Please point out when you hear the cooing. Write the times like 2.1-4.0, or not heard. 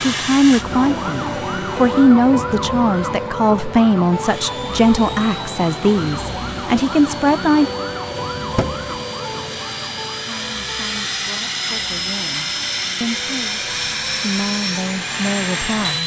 not heard.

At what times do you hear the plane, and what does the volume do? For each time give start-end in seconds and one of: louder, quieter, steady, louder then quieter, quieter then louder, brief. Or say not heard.
0.0-2.1 brief
4.2-16.0 louder.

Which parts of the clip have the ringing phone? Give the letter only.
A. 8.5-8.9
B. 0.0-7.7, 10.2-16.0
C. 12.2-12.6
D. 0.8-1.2
A.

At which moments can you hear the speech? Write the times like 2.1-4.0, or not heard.
0.0-7.7, 10.2-16.0.